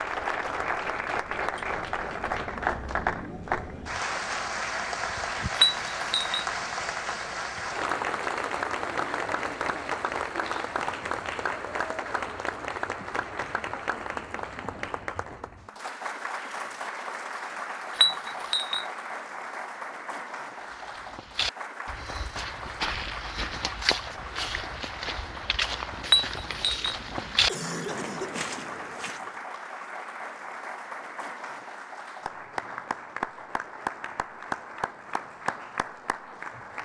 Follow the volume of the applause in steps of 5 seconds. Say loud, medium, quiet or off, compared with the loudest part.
loud, loud, loud, medium, medium, medium, medium, medium.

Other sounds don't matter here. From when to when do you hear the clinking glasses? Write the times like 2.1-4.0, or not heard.
5.5-6.5, 17.9-18.9, 26.1-26.9.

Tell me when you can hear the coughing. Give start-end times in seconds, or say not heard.
27.1-28.5.